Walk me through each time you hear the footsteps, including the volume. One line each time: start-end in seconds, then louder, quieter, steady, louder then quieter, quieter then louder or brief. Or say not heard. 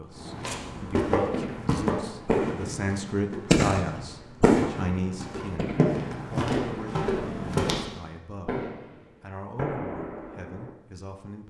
0.0-7.8 quieter then louder.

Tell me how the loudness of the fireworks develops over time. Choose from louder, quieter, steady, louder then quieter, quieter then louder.
louder then quieter.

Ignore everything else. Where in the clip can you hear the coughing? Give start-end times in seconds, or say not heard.
not heard.